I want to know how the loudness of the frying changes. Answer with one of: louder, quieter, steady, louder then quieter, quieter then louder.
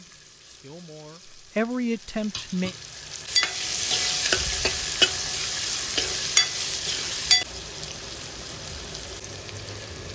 louder then quieter.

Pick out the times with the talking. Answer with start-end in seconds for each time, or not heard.
0.0-2.8.